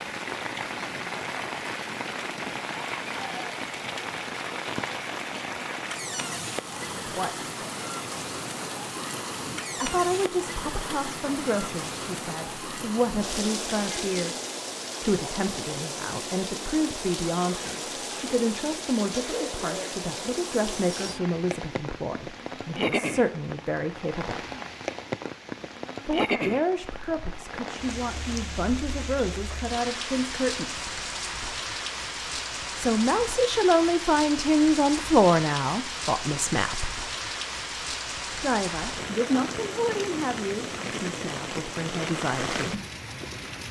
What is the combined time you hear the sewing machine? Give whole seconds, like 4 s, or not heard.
not heard.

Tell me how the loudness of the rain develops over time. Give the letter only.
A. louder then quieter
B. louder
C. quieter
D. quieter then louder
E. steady
E.